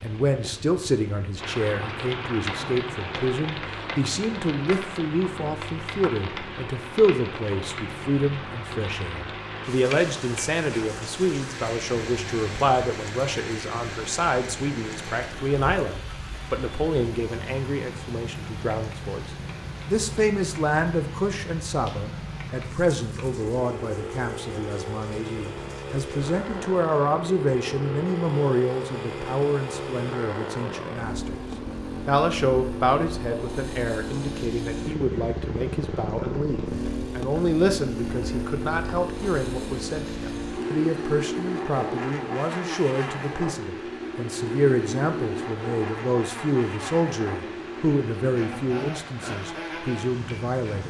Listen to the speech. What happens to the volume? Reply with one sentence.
The loudness of the speech stays about the same.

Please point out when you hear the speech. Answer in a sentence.
The speech can be heard from 0.0 to 31.4 s and from 32.0 to 50.8 s.